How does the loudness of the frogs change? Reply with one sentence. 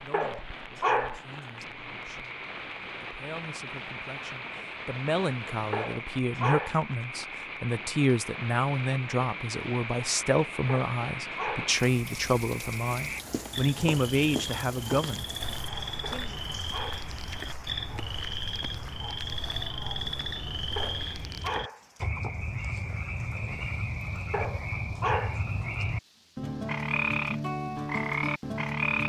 The volume of the frogs goes up.